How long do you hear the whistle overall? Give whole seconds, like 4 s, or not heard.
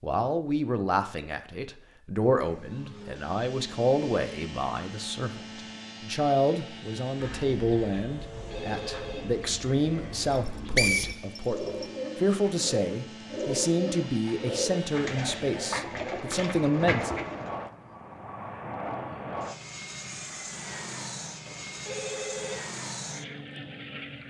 2 s.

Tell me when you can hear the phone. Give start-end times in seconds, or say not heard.
8.3-9.2, 21.4-22.6.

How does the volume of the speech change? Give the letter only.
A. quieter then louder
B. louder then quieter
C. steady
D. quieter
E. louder
C.